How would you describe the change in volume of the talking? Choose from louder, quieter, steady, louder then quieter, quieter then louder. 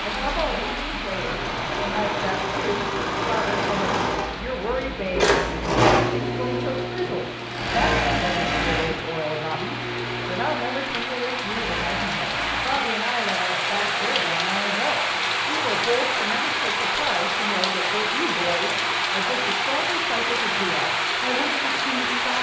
steady.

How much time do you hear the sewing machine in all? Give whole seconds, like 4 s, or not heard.
22 s.